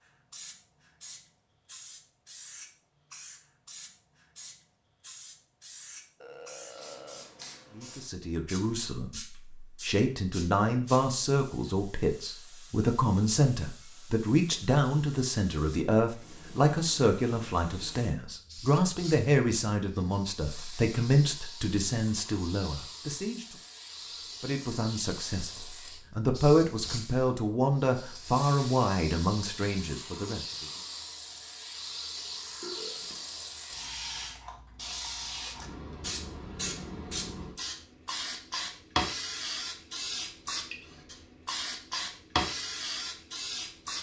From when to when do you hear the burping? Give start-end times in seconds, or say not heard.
6.2-7.3, 32.1-33.2.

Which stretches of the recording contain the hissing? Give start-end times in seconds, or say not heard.
0.0-43.9.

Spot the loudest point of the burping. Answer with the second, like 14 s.
33 s.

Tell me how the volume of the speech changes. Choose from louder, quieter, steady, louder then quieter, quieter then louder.
steady.